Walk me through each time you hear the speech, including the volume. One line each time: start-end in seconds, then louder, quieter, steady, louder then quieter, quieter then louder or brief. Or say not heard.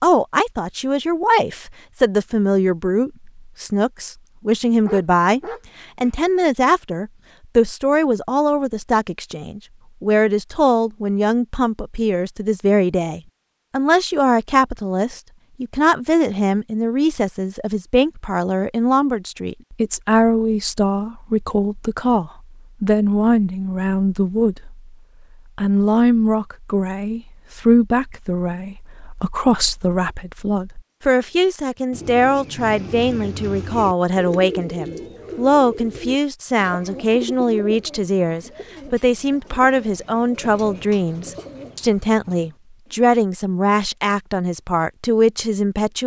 0.0-24.9 steady
25.6-46.0 steady.